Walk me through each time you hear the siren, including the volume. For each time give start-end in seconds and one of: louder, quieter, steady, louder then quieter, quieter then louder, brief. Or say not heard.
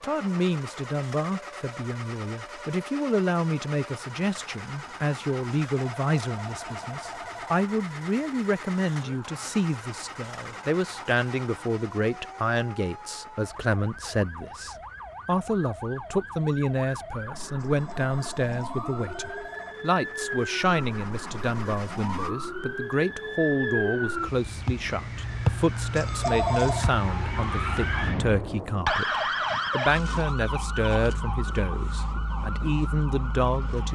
0.0-33.9 louder.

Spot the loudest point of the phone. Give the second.
26 s.